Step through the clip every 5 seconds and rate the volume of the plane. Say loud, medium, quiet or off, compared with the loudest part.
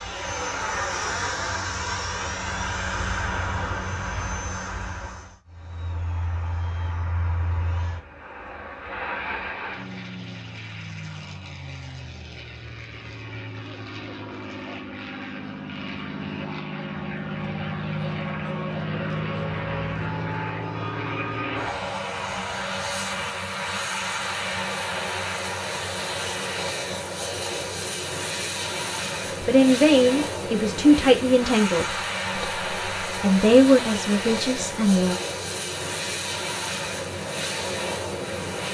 loud, medium, medium, loud, loud, loud, loud, loud.